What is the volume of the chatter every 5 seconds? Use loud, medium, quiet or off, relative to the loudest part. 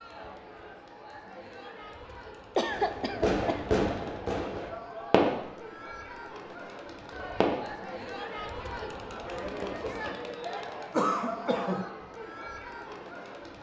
medium, loud, loud.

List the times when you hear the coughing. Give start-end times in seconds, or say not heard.
2.5-3.8, 10.9-11.8.